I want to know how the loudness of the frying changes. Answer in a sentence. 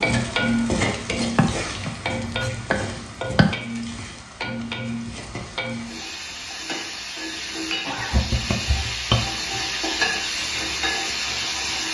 The loudness of the frying goes down, then up.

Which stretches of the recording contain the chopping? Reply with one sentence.
You can hear the chopping from 1.4 to 3.5 s and from 8.0 to 9.6 s.